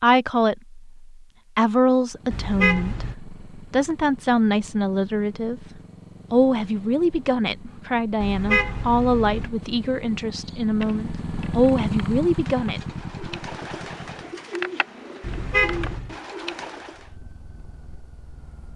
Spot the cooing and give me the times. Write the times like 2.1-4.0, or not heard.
10.4-17.1.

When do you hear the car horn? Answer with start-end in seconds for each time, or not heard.
2.3-3.1, 8.2-9.5, 15.2-16.1.